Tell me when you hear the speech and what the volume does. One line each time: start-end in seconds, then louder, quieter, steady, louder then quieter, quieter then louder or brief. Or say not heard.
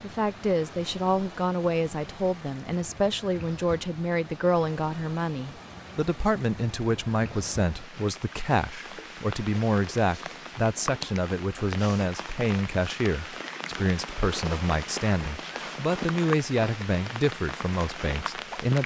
0.0-18.8 steady.